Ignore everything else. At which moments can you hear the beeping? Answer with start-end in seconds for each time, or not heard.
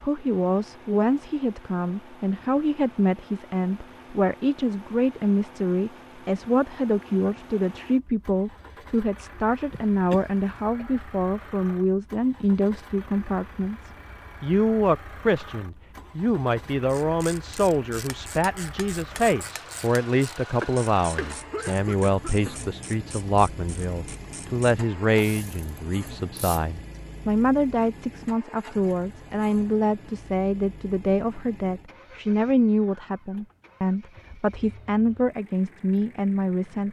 not heard.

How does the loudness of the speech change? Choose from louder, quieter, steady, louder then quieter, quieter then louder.
steady.